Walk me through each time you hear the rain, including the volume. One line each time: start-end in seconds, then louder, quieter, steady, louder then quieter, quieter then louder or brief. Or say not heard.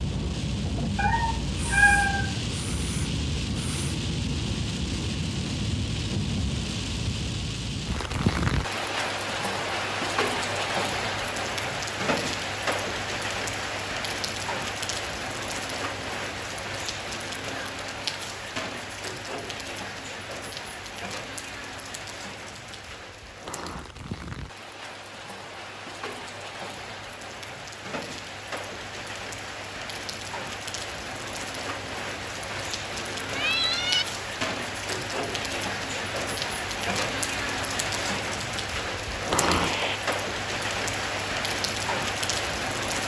0.0-43.0 quieter then louder.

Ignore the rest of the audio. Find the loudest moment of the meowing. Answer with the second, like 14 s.
2 s.